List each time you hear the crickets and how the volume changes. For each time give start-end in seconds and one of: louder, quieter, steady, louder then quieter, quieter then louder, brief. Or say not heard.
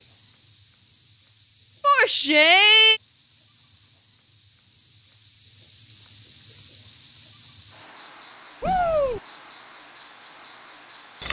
0.0-11.2 louder.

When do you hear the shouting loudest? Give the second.
3 s.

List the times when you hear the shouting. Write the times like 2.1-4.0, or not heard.
1.8-3.0, 8.6-9.2.